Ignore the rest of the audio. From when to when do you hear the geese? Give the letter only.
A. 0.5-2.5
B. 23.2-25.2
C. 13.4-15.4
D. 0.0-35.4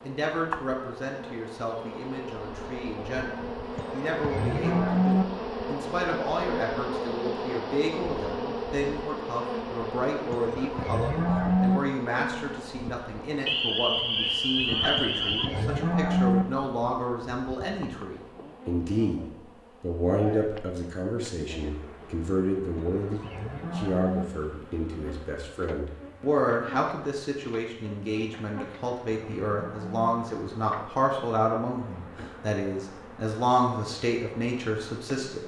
C.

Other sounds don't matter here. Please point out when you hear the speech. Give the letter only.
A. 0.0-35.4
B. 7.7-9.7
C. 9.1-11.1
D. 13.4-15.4
A.